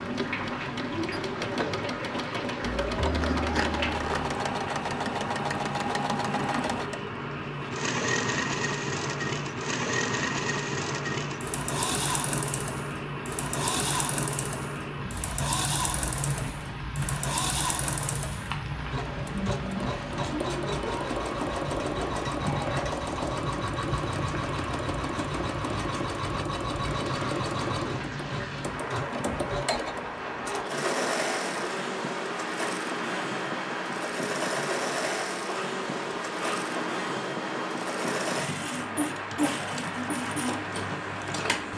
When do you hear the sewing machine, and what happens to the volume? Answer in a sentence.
You can hear the sewing machine from 0.0 to 41.7 s, at a steady volume.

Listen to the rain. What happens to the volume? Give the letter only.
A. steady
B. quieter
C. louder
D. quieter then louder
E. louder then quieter
A.